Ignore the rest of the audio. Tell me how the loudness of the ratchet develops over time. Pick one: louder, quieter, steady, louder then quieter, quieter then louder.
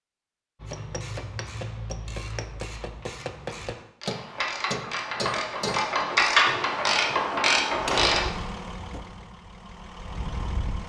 louder.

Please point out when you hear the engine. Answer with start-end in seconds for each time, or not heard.
7.7-10.8.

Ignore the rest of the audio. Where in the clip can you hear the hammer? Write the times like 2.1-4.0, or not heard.
0.6-9.0.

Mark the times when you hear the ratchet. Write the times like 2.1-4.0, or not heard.
0.7-8.2.